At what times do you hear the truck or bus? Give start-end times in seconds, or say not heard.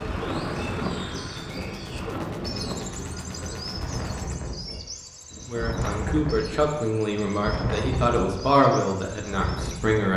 0.0-4.2.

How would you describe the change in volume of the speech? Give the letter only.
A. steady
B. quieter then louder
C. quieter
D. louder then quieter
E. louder
D.